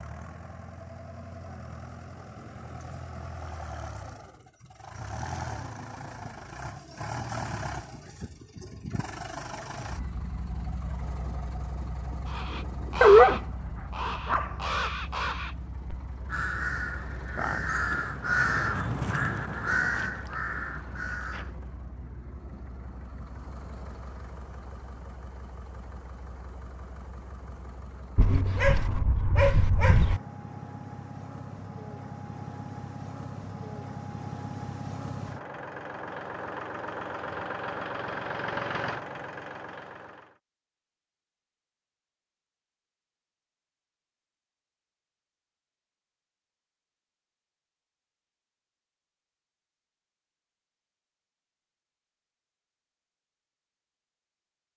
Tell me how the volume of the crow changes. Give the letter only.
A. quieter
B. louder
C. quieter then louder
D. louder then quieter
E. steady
D.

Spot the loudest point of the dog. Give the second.
13 s.